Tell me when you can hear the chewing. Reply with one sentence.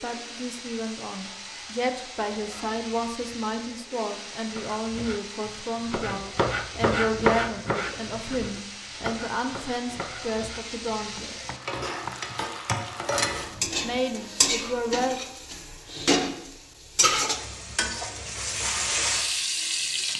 You can't hear the chewing here.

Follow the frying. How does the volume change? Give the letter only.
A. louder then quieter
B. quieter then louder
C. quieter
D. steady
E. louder
E.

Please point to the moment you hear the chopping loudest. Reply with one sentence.
The volume of the chopping peaks at 7 seconds.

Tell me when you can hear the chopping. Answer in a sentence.
The chopping can be heard from 4.5 to 14.1 s.